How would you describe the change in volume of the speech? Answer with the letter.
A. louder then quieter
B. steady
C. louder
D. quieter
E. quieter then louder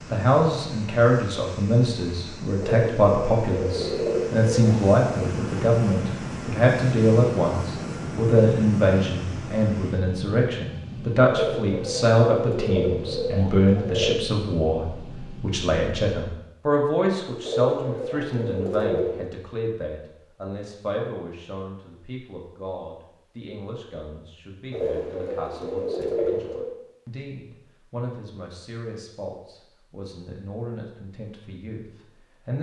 D.